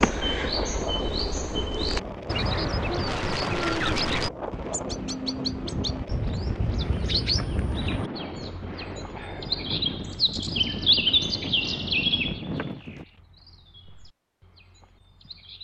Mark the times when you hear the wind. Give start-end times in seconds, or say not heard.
0.0-13.1.